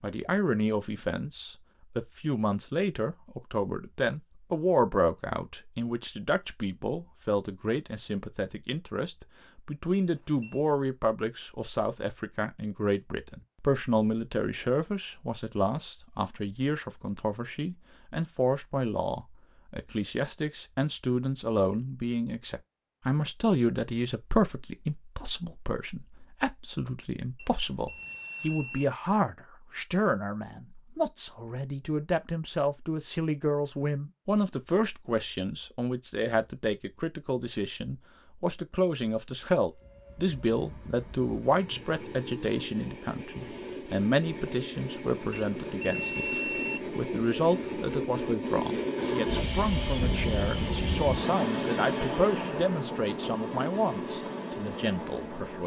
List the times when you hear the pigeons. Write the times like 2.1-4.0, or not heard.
not heard.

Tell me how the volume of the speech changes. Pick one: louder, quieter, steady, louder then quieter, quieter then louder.
steady.